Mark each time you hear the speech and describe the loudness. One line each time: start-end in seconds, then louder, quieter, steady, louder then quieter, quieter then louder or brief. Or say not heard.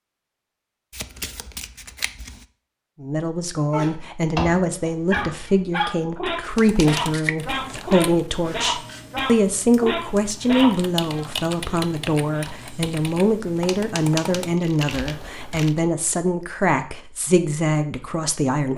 3.0-18.7 steady.